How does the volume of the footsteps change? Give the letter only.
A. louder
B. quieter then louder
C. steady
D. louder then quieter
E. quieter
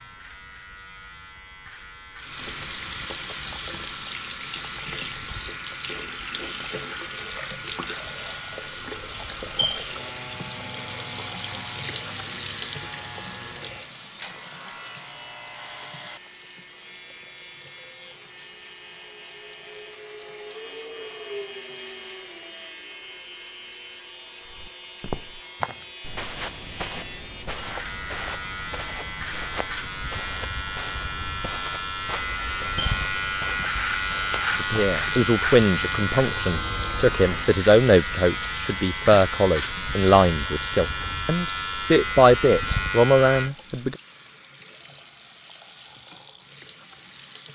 E.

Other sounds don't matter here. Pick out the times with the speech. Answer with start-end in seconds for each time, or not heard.
34.5-44.0.